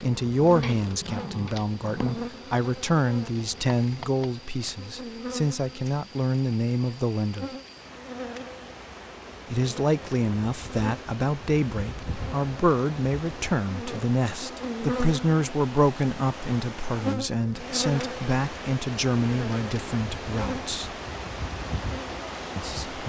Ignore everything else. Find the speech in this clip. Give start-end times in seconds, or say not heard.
0.0-7.5, 9.5-20.9, 22.6-23.0.